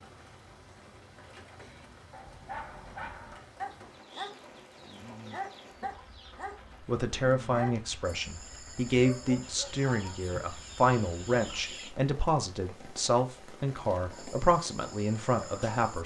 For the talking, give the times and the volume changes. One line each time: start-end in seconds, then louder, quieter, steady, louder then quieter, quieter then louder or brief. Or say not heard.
6.8-16.0 steady.